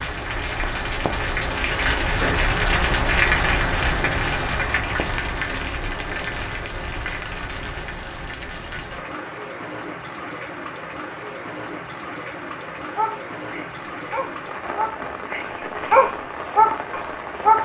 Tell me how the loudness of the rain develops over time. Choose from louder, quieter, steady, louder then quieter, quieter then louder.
quieter.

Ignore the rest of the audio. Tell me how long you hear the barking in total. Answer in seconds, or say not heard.
5 s.